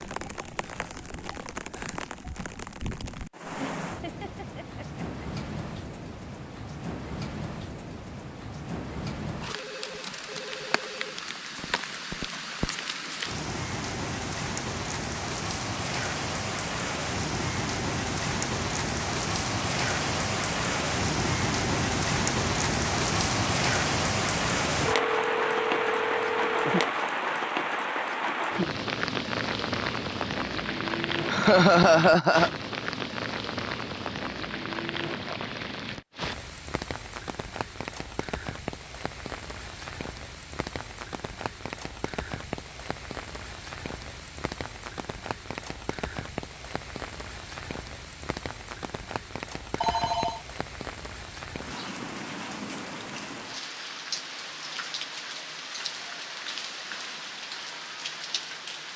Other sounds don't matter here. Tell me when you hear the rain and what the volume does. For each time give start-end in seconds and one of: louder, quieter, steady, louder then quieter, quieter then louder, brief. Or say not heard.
0.0-58.9 louder then quieter.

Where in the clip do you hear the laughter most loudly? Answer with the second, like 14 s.
32 s.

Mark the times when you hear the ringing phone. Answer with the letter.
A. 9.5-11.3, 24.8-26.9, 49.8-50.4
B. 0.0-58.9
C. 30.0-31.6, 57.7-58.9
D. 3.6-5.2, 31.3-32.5
A.